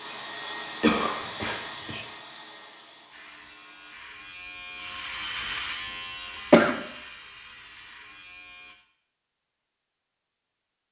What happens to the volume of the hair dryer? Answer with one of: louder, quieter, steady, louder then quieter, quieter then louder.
quieter.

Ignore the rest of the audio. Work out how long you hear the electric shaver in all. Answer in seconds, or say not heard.
6 s.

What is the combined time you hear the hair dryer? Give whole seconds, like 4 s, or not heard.
4 s.